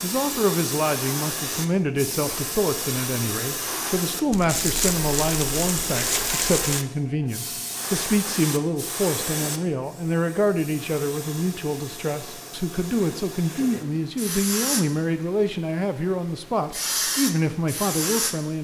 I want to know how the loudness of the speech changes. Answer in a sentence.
The volume of the speech stays about the same.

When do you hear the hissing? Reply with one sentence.
The hissing can be heard from 0.0 to 18.6 s.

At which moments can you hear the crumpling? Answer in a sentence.
You can hear the crumpling from 4.3 to 6.8 s.